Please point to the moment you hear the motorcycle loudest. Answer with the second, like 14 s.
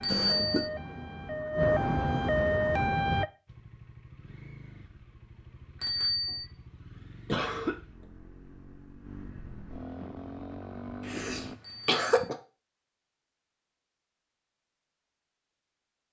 11 s.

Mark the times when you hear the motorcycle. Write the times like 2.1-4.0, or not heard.
3.5-11.6.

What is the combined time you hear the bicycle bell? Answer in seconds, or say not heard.
2 s.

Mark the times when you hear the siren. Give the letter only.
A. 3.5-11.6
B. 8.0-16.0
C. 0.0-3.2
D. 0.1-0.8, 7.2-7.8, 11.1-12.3
C.